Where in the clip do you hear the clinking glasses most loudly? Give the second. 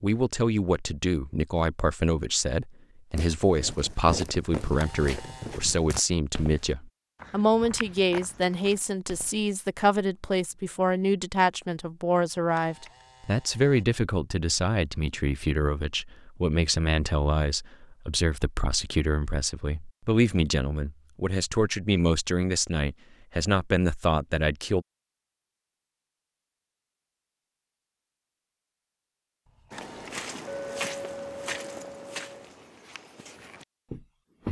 31 s.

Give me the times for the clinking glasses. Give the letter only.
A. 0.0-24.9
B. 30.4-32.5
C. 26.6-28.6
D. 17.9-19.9
B.